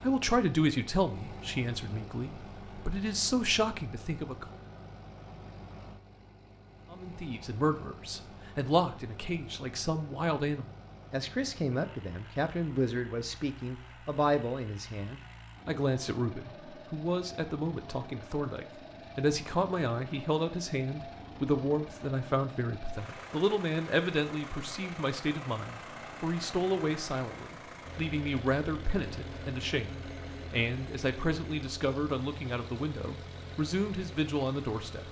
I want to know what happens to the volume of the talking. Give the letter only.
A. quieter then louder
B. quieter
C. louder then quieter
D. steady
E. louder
D.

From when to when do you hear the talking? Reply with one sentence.
You can hear the talking from 0.0 to 4.5 s and from 6.9 to 35.0 s.